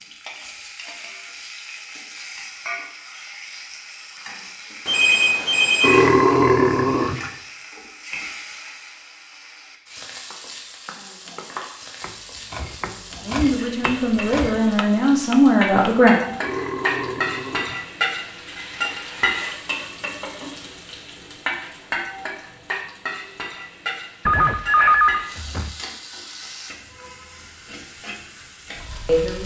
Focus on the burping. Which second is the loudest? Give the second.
6 s.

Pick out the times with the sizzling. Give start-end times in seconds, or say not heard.
0.0-29.4.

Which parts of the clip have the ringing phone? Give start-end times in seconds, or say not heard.
4.8-6.1, 24.2-25.8.